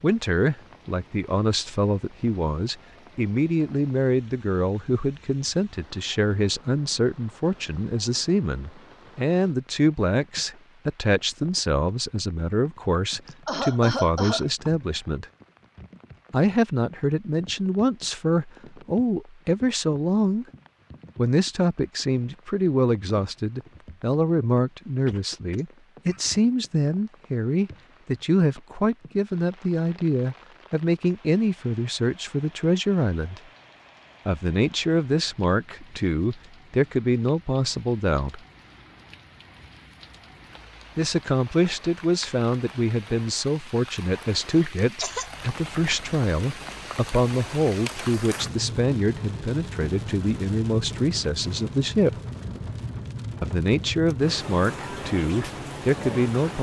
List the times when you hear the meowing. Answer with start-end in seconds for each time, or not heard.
not heard.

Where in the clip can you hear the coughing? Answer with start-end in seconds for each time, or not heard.
13.2-14.7, 25.1-26.2, 44.4-45.3.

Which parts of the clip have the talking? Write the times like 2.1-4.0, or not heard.
0.0-15.2, 16.3-20.4, 21.1-33.4, 34.2-38.4, 41.0-52.1, 53.4-56.5.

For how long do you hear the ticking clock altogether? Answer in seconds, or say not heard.
not heard.